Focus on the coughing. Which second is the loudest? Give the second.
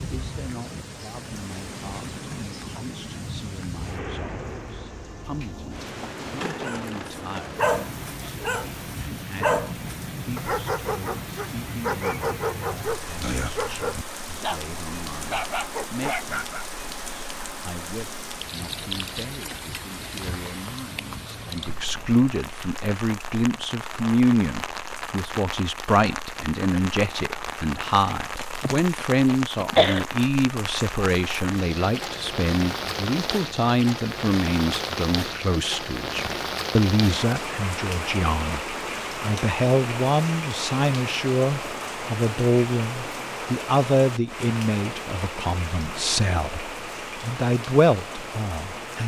30 s.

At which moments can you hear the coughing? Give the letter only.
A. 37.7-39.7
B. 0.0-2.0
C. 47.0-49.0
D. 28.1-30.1
D.